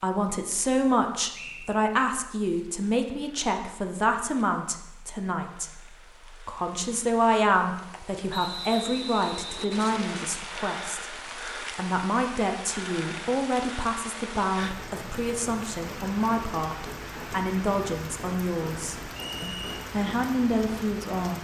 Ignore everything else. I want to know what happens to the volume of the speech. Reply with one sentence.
The loudness of the speech stays about the same.